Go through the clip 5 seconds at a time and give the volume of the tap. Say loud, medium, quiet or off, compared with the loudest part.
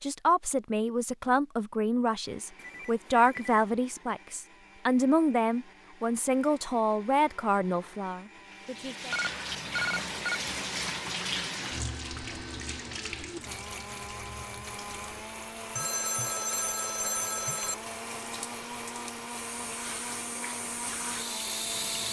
off, loud, loud, medium, loud.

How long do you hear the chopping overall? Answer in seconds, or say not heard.
not heard.